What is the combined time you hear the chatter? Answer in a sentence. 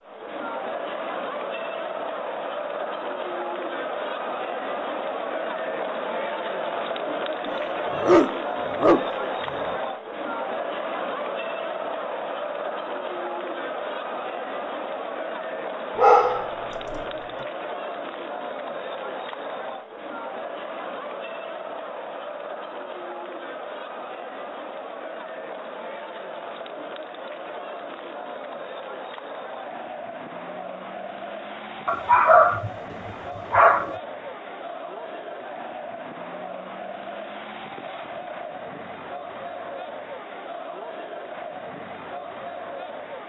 The chatter can be heard for 43 seconds in total.